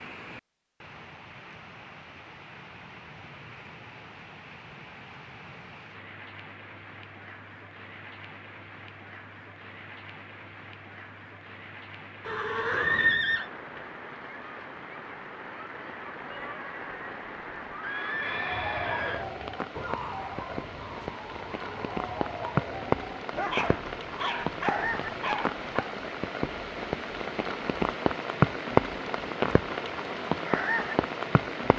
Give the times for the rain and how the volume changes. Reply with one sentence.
You can hear the rain from 0.0 to 31.7 s, getting louder.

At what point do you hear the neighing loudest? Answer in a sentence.
The volume of the neighing peaks at 13 seconds.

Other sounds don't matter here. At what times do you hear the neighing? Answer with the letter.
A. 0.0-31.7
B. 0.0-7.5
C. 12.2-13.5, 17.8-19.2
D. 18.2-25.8
C.